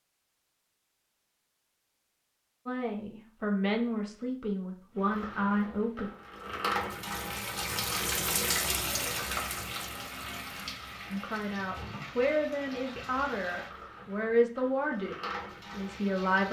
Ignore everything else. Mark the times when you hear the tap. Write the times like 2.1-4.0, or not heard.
5.0-16.4.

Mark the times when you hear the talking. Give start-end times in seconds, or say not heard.
2.6-6.1, 11.1-16.4.